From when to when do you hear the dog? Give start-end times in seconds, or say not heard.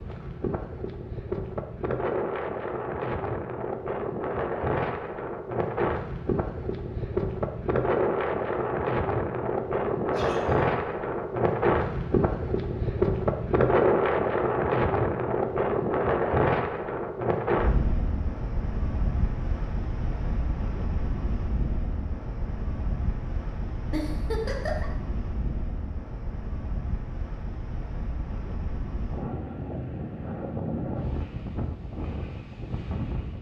not heard.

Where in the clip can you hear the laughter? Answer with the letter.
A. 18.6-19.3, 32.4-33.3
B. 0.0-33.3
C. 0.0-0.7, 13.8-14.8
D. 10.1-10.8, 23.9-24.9
D.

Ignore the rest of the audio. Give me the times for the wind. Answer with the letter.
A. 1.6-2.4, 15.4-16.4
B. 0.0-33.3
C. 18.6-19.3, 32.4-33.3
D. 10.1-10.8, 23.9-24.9
B.